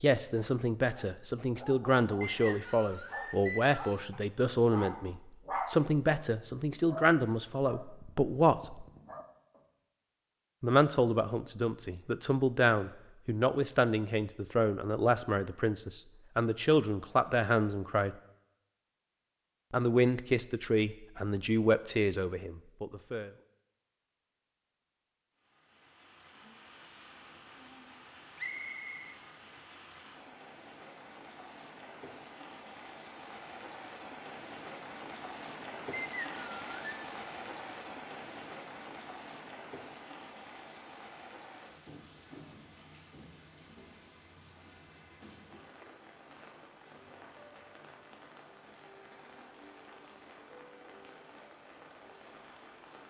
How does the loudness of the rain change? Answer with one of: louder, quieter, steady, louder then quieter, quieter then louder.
louder then quieter.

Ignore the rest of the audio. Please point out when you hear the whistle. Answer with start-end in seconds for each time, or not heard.
2.2-4.0, 28.4-29.1, 35.9-37.0.